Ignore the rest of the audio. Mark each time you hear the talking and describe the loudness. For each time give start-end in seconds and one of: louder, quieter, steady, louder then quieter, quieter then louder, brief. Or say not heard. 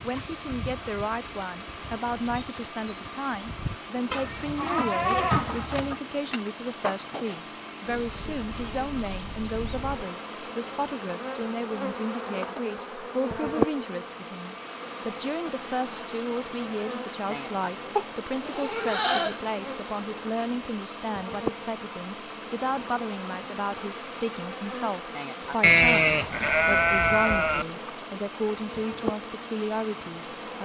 0.0-30.5 steady.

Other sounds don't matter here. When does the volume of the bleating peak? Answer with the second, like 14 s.
26 s.